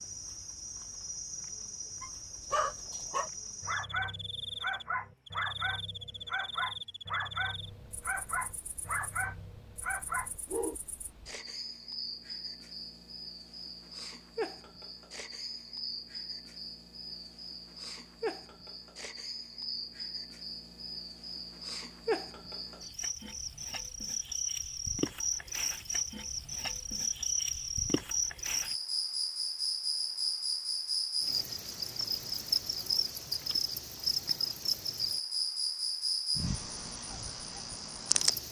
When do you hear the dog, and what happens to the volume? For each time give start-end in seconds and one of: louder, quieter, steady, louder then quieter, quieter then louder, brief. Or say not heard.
2.0-10.8 steady.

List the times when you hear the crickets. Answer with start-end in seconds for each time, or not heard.
0.0-38.4.